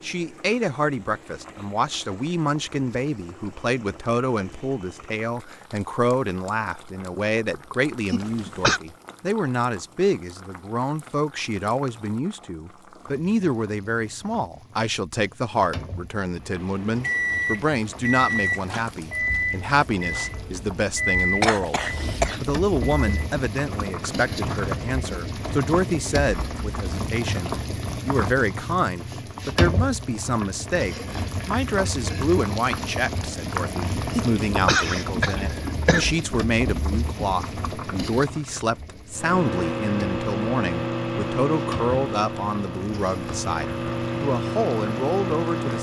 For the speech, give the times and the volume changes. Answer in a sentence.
You can hear the speech from 0.0 to 45.7 s, at a steady volume.